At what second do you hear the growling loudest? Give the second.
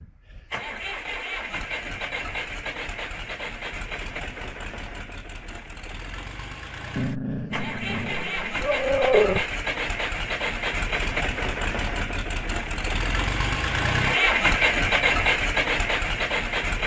9 s.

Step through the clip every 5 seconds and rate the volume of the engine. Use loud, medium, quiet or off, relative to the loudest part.
medium, medium, loud, loud.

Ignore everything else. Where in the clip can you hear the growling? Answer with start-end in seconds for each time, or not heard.
7.0-9.4.